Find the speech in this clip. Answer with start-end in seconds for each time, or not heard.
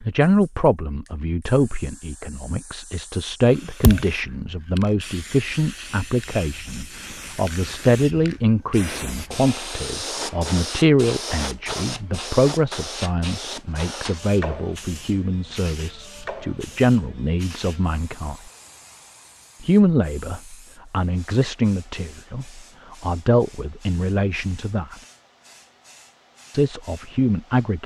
0.0-18.4, 19.6-24.9, 26.5-27.8.